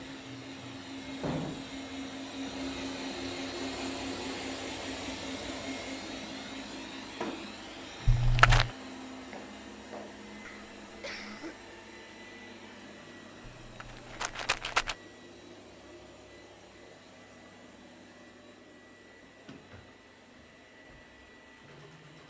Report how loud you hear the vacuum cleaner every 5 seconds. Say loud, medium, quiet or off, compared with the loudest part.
loud, loud, medium, quiet, quiet.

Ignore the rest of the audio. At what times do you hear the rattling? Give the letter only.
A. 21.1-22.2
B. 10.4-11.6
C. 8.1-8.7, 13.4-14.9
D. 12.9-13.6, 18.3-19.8
C.